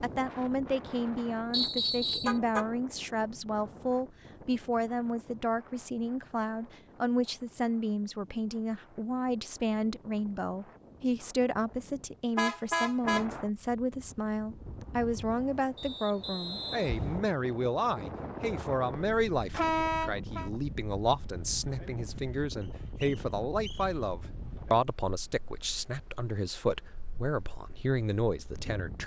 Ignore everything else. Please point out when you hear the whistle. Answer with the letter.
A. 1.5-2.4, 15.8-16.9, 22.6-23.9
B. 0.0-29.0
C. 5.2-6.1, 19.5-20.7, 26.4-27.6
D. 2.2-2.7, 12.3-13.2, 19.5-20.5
A.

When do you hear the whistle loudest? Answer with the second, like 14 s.
2 s.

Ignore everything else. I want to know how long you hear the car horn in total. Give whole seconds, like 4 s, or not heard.
2 s.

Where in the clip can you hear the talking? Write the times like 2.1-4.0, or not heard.
0.0-29.0.